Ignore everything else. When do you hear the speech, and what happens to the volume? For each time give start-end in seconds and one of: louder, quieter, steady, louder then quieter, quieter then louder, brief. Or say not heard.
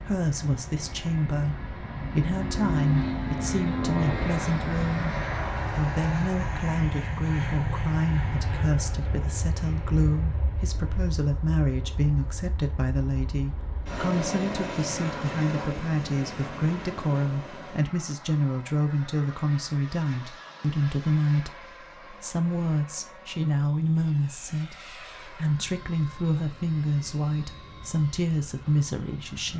0.1-29.5 steady.